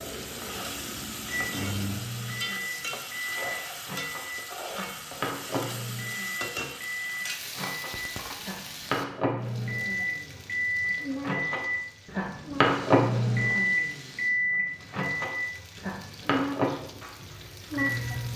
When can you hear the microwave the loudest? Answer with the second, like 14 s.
13 s.